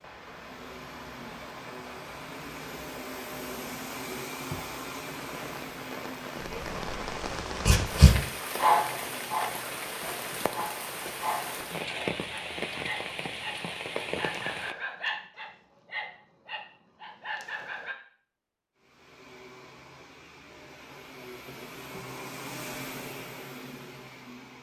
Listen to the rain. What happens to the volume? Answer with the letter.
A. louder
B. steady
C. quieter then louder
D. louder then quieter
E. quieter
A.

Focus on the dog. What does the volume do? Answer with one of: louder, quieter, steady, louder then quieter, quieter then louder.
quieter.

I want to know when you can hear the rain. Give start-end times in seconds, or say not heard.
0.0-14.8.